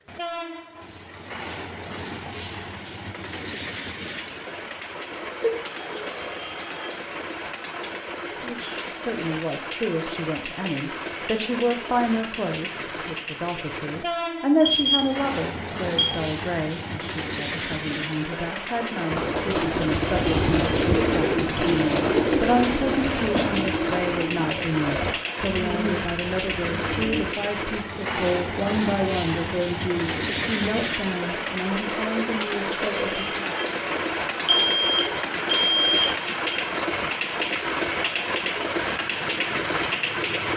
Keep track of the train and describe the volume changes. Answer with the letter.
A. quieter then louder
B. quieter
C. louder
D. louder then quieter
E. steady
C.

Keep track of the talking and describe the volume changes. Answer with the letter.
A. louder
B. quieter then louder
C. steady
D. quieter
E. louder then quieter
C.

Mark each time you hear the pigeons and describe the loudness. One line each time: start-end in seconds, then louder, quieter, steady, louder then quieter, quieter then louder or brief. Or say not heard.
19.1-27.3 quieter.